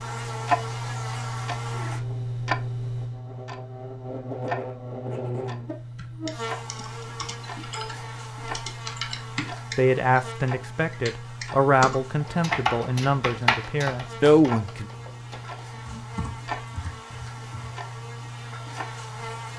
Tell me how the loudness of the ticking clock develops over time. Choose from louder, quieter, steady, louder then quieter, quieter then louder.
quieter.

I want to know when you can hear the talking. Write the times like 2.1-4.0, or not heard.
9.8-14.8.